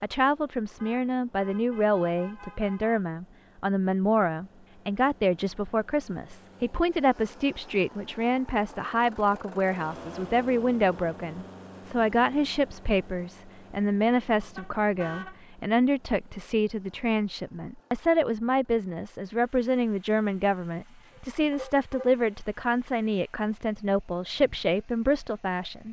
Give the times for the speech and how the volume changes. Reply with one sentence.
You can hear the speech from 0.0 to 25.8 s, at a steady volume.